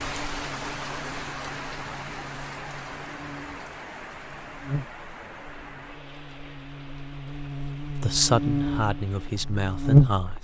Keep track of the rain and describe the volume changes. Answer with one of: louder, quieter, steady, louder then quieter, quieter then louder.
quieter.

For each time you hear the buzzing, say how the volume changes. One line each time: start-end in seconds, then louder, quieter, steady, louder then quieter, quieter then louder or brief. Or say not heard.
0.0-10.2 louder.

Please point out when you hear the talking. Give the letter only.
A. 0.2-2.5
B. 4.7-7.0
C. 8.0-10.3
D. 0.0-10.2
C.